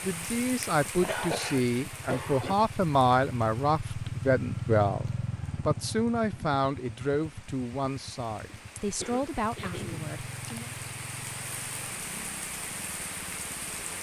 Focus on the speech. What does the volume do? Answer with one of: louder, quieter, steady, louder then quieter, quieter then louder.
quieter.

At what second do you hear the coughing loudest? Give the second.
1 s.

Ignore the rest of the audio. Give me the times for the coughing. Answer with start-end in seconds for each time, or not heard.
0.8-2.5, 8.4-10.2.